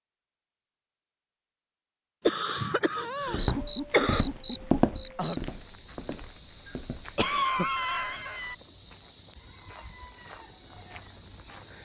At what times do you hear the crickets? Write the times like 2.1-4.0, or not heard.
3.0-11.8.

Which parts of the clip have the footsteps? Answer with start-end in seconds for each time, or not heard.
3.2-7.2.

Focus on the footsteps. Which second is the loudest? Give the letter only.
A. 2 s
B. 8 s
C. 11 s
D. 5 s
D.